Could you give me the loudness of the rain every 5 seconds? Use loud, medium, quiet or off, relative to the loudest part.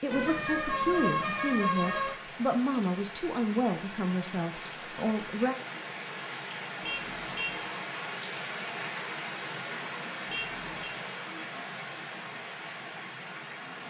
medium, loud, loud.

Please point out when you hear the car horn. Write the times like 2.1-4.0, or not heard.
0.1-2.1, 6.8-7.6, 10.2-10.9.